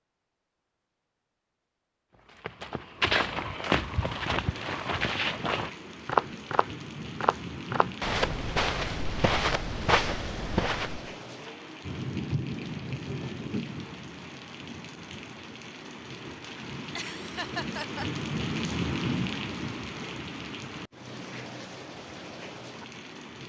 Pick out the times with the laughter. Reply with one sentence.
The laughter can be heard from 16.9 to 18.1 s.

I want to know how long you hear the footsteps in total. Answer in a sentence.
The footsteps can be heard for 9 seconds in total.